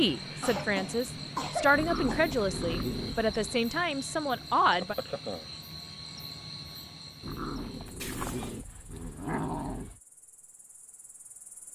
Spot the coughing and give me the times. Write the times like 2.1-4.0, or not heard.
0.4-2.3, 8.0-8.6.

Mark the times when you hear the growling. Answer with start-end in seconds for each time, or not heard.
1.7-3.6, 7.2-10.0.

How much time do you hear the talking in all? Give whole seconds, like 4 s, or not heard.
5 s.